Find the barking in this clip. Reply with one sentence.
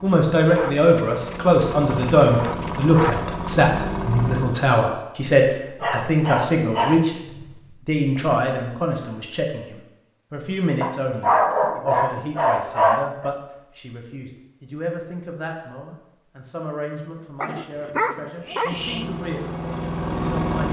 You can hear the barking from 0.5 to 3.2 s, from 5.8 to 7.5 s, from 10.8 to 13.3 s and from 17.4 to 19.1 s.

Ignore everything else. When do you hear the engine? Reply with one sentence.
The engine can be heard from 0.0 to 4.6 s and from 18.6 to 20.6 s.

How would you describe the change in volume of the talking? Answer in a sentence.
The loudness of the talking goes down.